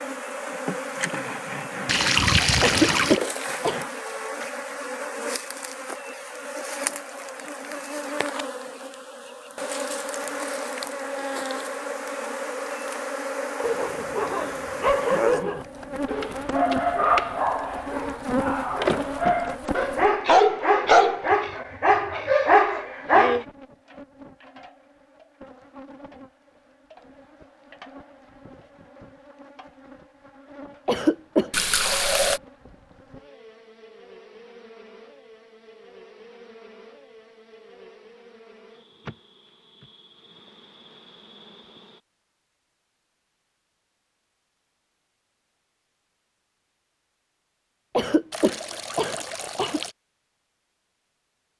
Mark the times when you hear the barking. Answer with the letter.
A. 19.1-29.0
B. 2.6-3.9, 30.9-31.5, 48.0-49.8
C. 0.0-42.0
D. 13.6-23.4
D.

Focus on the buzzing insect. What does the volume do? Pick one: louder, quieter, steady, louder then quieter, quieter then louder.
quieter.